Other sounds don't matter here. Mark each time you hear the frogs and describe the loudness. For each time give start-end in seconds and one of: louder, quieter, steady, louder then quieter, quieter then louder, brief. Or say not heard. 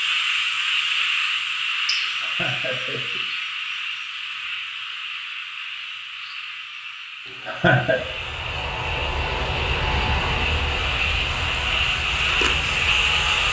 0.0-13.4 quieter then louder.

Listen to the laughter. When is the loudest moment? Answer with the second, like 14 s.
8 s.